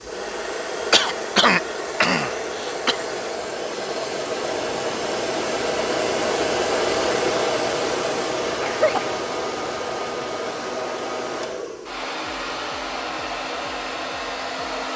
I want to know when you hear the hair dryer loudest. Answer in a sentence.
The loudest moment of the hair dryer is at 7 seconds.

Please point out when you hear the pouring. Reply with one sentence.
The pouring can't be heard in this clip.